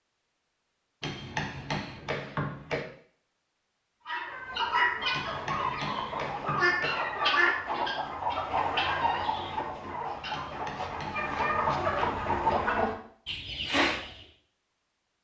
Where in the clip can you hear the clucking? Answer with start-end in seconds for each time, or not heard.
4.0-14.2.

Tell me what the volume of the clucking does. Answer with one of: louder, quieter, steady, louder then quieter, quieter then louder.
steady.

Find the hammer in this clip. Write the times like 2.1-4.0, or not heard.
1.0-2.9, 5.1-7.0, 10.3-12.2.